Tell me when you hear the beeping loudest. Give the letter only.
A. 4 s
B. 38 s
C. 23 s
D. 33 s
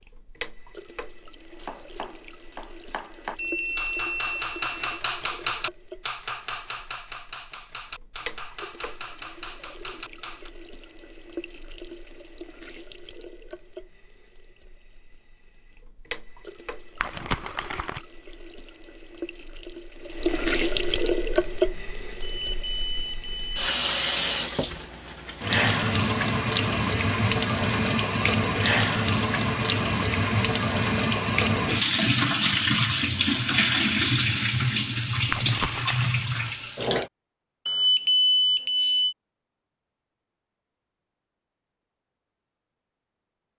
B.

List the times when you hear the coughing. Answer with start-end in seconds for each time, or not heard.
not heard.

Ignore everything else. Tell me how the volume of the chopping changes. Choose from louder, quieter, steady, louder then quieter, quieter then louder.
louder then quieter.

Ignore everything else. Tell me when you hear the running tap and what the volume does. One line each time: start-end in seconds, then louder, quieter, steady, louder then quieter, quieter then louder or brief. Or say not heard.
0.0-37.1 louder.